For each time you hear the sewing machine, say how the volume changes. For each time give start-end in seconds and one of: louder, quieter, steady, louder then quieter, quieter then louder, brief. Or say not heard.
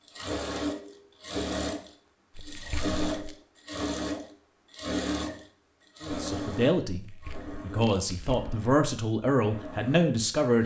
0.1-10.6 quieter.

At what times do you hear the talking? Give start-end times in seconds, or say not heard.
6.0-10.6.